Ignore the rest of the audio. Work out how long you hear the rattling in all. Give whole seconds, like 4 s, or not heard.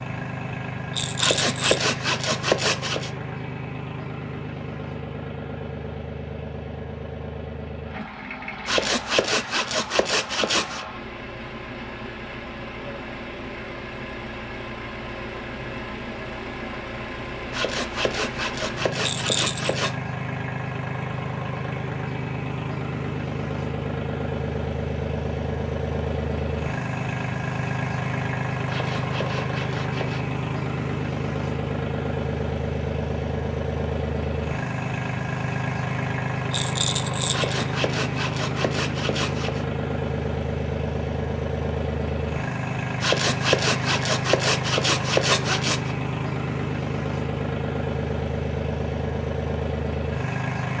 3 s.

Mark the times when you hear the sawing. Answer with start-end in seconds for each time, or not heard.
1.1-3.1, 8.7-10.8, 17.5-19.9, 28.6-30.2, 37.3-39.6, 43.0-46.0.